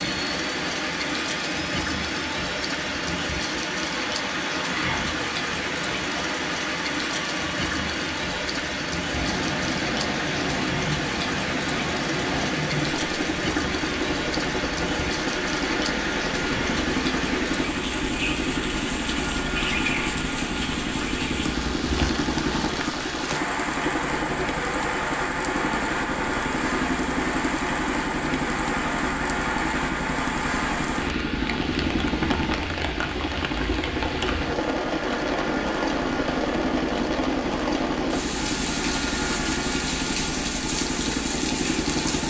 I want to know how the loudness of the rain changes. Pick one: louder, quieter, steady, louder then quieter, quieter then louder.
steady.